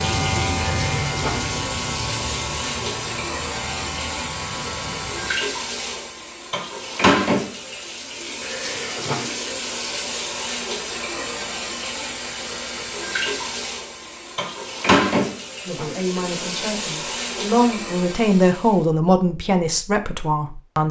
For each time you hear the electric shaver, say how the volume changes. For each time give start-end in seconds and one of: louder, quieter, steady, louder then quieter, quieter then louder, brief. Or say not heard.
0.0-5.3 quieter.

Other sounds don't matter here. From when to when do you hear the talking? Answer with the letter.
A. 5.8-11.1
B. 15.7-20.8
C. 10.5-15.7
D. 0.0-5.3
B.